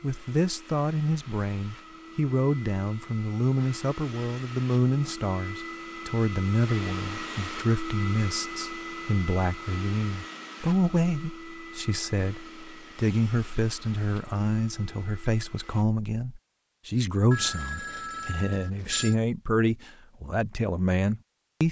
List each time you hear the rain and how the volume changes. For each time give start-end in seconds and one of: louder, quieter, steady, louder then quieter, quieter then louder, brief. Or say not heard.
not heard.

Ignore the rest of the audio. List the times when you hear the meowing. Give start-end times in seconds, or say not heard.
not heard.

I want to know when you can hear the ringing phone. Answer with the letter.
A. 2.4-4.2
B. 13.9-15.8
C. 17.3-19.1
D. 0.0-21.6
C.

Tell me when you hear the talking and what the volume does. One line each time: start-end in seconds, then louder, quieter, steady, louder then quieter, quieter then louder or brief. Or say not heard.
0.0-21.6 steady.